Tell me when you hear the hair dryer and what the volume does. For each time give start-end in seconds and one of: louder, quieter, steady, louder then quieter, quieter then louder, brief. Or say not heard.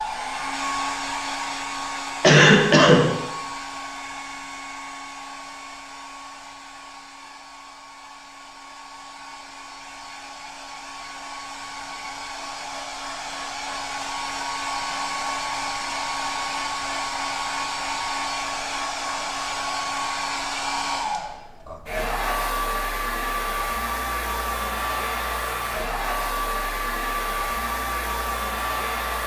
0.0-29.2 quieter then louder.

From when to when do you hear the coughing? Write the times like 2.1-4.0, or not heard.
2.2-3.0.